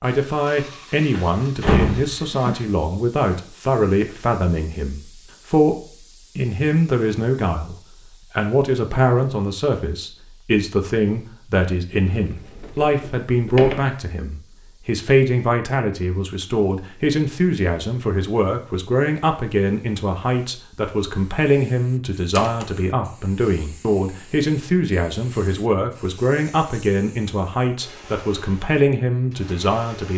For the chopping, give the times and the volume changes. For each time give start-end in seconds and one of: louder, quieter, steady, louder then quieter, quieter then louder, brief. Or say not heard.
not heard.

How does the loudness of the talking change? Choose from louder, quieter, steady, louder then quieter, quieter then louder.
steady.